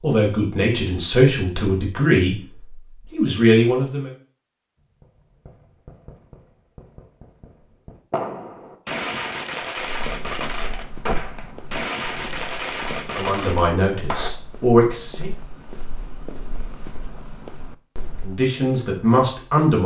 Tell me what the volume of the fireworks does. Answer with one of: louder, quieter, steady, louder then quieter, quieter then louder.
louder.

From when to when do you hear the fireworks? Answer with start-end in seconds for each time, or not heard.
4.8-14.3.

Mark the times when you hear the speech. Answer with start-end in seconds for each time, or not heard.
0.0-4.1, 13.2-15.3, 18.2-19.8.